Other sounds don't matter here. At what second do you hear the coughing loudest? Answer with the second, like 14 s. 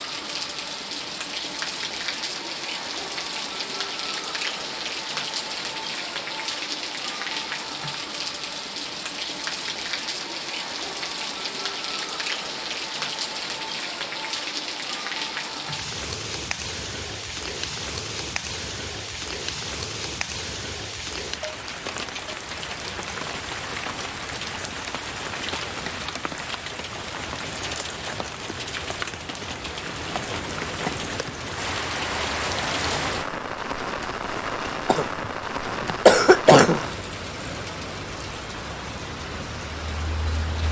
36 s.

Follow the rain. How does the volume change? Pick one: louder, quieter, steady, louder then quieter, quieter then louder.
steady.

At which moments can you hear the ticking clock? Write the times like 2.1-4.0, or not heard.
not heard.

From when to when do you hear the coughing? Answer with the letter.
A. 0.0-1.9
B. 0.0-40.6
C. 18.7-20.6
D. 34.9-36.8
D.